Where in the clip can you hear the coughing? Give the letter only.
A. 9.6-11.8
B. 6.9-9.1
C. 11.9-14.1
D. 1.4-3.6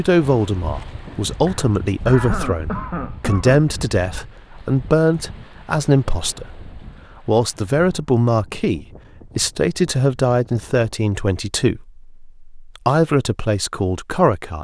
D.